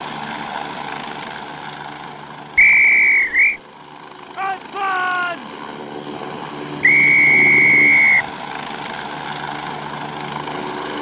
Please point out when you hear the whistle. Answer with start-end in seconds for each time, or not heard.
2.5-3.6, 6.8-8.2.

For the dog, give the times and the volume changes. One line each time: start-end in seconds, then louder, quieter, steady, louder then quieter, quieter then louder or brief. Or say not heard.
not heard.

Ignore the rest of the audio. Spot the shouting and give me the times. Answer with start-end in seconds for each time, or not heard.
4.3-5.5.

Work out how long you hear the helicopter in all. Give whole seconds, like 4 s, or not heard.
11 s.